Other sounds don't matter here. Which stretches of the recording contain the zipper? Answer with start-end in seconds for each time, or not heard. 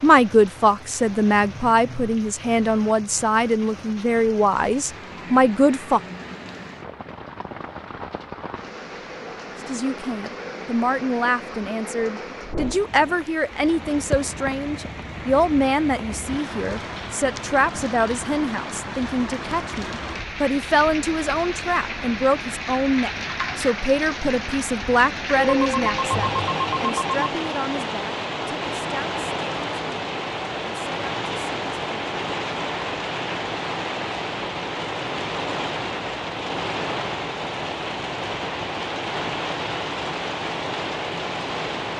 not heard.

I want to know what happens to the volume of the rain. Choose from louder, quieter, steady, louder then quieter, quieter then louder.
louder.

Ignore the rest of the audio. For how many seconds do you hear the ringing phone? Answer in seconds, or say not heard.
2 s.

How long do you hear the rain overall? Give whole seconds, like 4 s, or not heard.
42 s.